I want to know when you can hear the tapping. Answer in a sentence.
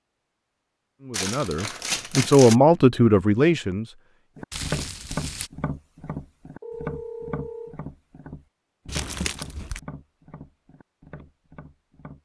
The tapping can be heard from 4.3 to 12.2 s.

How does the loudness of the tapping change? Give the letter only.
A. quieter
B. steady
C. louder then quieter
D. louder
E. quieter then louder
A.